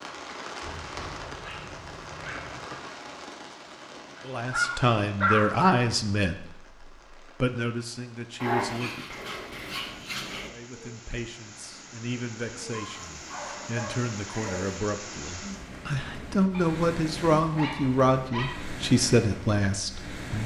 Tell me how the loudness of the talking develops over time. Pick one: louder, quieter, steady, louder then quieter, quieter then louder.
quieter then louder.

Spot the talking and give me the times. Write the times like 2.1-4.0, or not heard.
4.2-9.1, 10.4-20.4.